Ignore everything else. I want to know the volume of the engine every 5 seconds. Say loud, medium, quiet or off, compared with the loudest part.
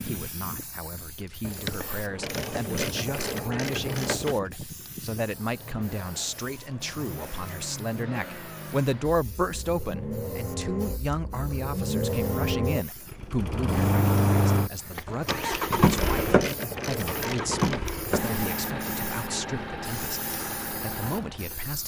quiet, quiet, loud, loud, medium.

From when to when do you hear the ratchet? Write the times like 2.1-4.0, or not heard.
1.4-4.3, 15.1-17.9.